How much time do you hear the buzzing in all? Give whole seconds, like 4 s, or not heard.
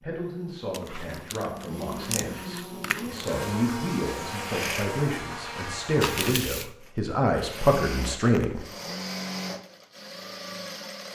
6 s.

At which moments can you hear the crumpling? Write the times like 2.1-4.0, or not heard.
0.7-3.4, 6.0-6.7.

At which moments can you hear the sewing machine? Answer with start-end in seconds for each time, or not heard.
3.0-5.0, 6.8-11.1.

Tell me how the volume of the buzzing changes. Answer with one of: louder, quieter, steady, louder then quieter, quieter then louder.
louder.